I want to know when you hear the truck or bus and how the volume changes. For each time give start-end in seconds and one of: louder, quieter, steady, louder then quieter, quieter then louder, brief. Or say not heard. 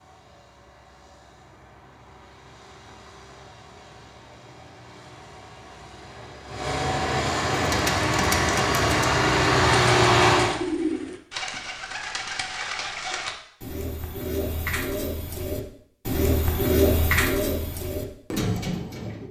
0.0-10.6 louder.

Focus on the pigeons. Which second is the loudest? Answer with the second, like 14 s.
17 s.